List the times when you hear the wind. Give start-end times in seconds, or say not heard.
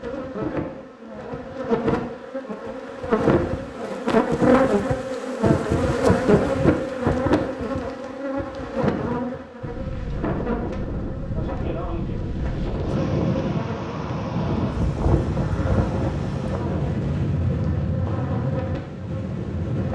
9.6-19.8.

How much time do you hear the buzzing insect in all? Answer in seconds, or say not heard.
20 s.